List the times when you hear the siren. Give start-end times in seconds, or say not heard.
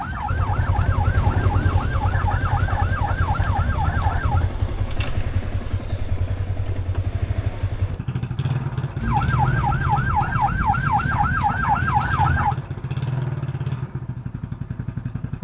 0.0-4.5, 8.9-12.6.